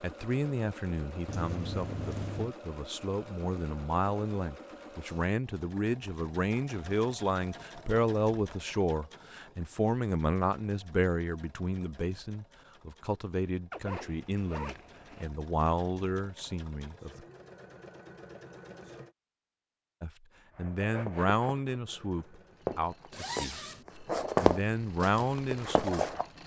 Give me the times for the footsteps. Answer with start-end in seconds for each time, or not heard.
20.6-26.3.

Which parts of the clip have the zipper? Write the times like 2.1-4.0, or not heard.
1.2-2.5, 13.7-15.2, 23.1-23.9.